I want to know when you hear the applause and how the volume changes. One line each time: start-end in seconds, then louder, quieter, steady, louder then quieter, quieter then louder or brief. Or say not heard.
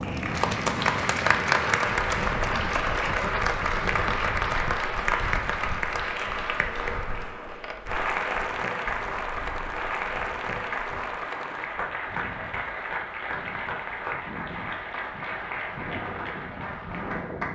0.0-17.4 quieter.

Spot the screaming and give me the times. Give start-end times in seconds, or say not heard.
not heard.